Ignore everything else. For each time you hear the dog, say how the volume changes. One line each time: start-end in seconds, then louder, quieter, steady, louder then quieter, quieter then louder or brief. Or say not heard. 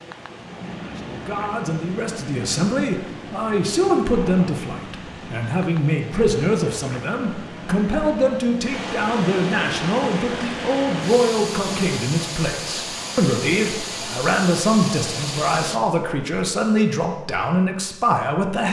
not heard.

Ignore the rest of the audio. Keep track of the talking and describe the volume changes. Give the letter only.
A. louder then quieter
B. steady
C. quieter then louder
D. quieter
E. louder
B.